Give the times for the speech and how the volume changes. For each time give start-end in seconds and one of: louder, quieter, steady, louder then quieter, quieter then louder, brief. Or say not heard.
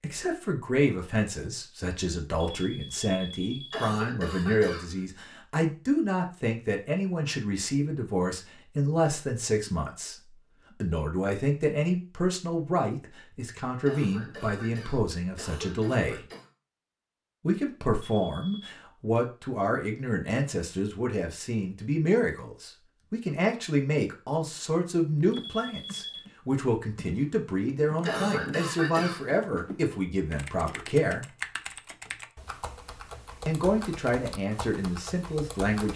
0.0-16.2 steady
17.4-31.2 steady
33.5-35.9 brief.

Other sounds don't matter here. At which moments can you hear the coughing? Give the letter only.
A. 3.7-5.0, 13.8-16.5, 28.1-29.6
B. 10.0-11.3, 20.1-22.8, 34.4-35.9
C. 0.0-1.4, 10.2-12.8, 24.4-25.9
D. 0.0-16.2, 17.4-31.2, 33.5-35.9
A.